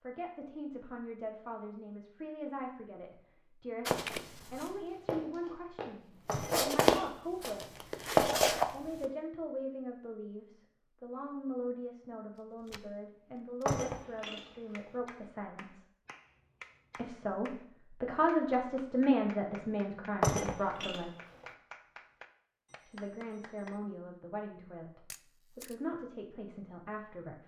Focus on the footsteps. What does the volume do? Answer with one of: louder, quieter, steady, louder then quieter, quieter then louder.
louder.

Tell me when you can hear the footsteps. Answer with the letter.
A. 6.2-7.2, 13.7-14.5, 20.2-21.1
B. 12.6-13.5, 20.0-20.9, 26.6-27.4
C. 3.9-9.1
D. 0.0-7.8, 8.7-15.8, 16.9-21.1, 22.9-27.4
C.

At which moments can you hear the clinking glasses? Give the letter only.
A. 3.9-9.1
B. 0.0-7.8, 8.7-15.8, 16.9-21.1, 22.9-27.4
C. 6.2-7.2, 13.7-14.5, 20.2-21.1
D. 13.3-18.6
C.